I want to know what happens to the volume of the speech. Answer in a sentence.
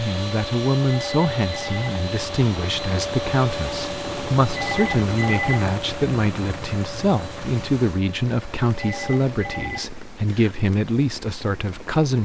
The volume of the speech stays about the same.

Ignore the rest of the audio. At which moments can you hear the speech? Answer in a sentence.
The speech can be heard from 0.0 to 12.2 s.